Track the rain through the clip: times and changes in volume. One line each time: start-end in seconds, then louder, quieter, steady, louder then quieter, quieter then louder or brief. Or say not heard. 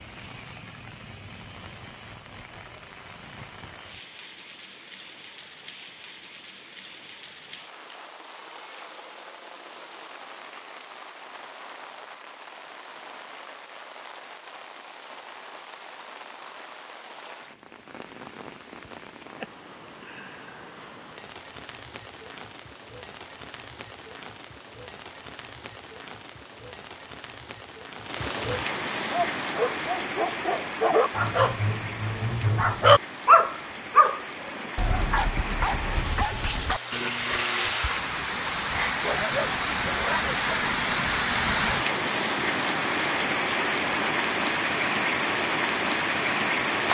0.0-46.8 louder.